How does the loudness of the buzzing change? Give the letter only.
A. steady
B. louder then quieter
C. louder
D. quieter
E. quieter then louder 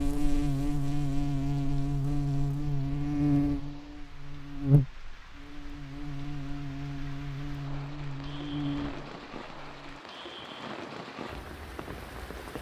D.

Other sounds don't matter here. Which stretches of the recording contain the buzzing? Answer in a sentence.
The buzzing can be heard from 0.0 to 10.0 s.